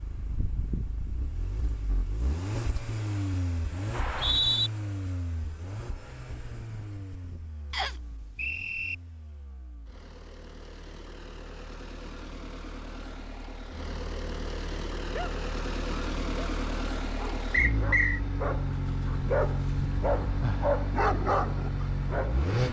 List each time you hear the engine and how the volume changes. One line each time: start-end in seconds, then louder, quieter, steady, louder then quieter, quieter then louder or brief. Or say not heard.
0.0-22.6 quieter then louder.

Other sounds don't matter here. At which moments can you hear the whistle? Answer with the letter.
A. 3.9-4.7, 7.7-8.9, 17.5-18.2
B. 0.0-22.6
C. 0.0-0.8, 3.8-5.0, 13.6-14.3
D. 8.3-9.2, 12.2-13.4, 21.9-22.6
A.